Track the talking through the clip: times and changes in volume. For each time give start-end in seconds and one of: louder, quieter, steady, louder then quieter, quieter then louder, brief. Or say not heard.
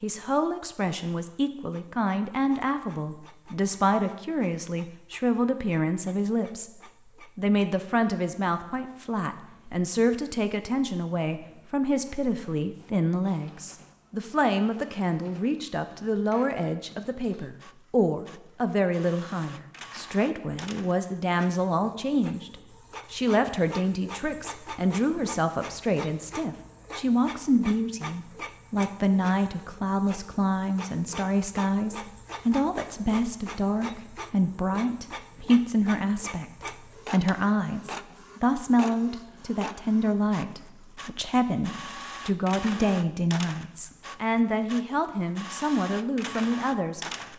0.0-47.3 steady.